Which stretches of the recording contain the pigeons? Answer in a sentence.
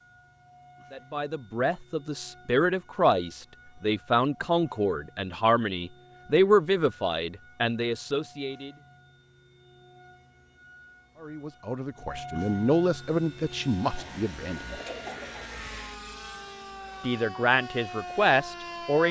You can hear the pigeons from 13.9 to 16.0 s.